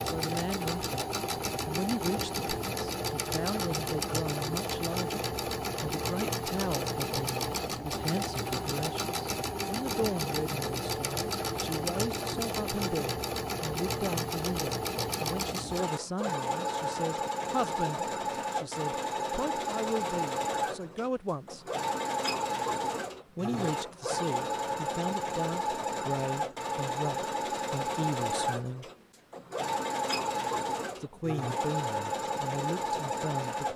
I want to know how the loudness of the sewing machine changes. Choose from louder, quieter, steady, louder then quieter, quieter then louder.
steady.